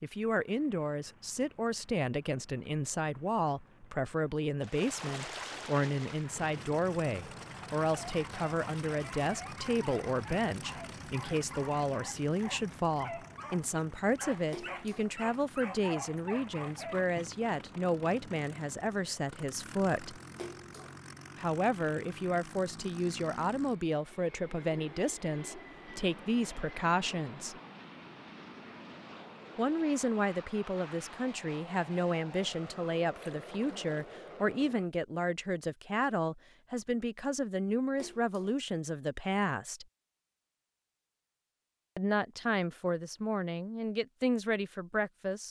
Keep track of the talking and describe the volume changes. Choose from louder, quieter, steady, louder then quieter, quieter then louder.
steady.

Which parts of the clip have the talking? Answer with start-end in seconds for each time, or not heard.
0.0-20.2, 21.4-27.6, 29.6-39.9, 42.0-45.4.